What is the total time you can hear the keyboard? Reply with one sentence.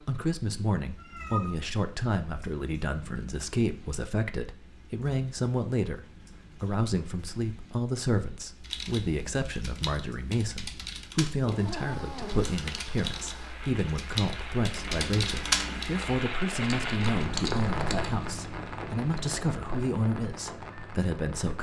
You can hear the keyboard for 10 seconds altogether.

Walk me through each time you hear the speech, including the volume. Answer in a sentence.
The speech can be heard from 0.1 to 21.5 s, at a steady volume.